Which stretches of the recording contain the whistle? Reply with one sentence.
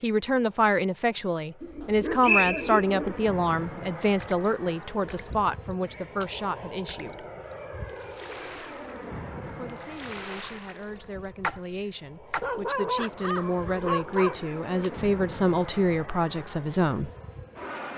You can hear the whistle from 1.8 to 2.9 s.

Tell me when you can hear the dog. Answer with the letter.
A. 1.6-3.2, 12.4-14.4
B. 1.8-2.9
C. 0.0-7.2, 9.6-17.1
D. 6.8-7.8
A.